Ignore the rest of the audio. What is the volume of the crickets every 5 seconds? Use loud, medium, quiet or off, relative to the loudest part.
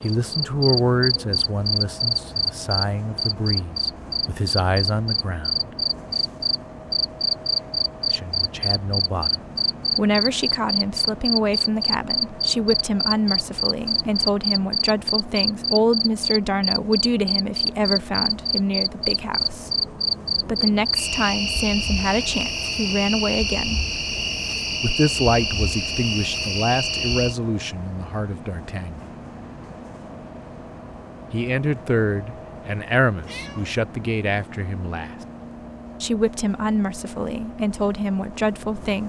loud, loud, loud, loud, loud, loud, off, off.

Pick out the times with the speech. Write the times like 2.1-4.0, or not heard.
0.0-5.7, 8.1-19.7, 20.4-23.9, 24.8-29.0, 31.3-35.1, 36.0-39.0.